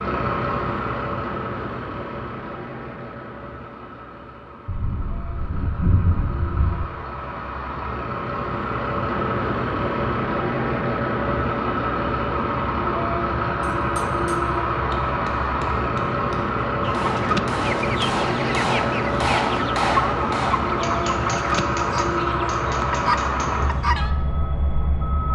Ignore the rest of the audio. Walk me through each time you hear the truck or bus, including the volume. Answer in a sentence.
The truck or bus can be heard from 0.0 to 25.3 s, getting louder.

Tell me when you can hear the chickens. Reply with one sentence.
You can hear the chickens from 16.8 to 24.1 s.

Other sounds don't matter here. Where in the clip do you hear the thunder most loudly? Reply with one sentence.
The volume of the thunder peaks at 6 seconds.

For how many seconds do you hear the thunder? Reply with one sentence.
You can hear the thunder for 2 seconds altogether.